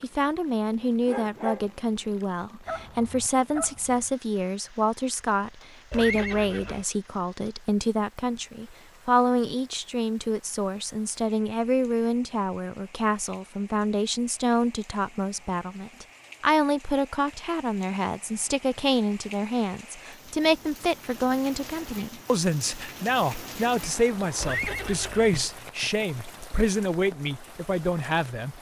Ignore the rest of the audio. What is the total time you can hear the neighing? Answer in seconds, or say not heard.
2 s.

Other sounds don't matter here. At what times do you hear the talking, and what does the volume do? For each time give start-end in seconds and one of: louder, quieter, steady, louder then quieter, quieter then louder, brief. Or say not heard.
0.0-28.5 steady.